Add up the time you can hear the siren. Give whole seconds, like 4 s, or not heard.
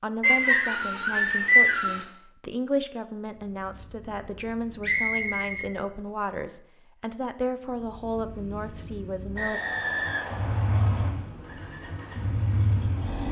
not heard.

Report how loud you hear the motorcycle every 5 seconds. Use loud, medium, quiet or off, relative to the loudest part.
quiet, quiet, loud.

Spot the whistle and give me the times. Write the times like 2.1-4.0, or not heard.
0.2-2.0, 4.8-5.7, 9.3-11.1.